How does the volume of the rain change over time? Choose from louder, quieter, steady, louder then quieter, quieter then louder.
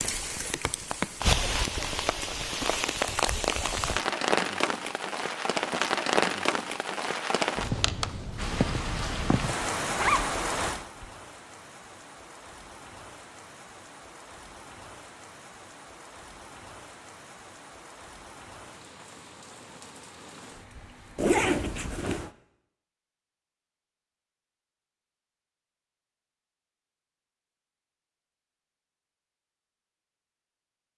quieter.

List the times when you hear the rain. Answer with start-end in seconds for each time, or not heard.
0.0-21.4.